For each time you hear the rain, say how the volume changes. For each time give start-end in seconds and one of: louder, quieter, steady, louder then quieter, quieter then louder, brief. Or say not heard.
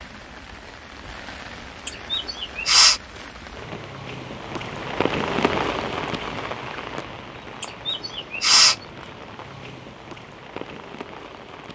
0.0-11.6 louder then quieter.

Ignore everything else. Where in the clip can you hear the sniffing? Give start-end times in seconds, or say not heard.
1.9-3.0, 7.6-8.8.